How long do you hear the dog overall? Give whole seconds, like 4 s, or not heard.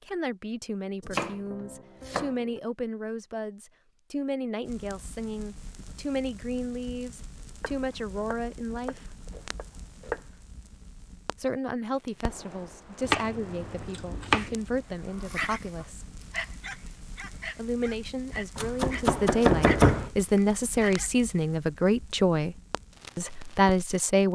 6 s.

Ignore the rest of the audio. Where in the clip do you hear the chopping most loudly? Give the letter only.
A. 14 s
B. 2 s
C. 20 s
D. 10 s
C.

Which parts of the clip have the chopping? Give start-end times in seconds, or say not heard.
1.0-2.6, 7.6-10.3, 13.1-14.6, 18.6-20.1.